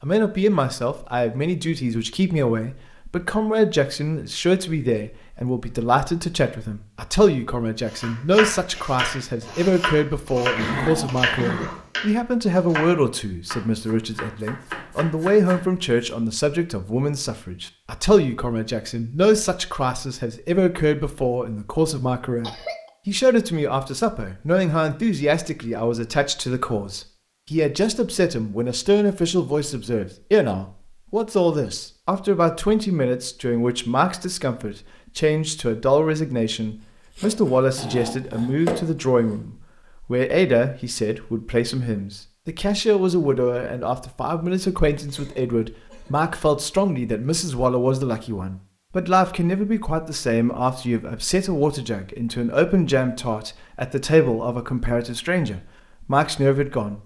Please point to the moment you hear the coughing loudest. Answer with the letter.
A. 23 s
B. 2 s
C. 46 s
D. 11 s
D.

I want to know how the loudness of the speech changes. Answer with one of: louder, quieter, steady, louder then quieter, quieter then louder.
steady.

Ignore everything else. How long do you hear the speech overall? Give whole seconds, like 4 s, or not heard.
57 s.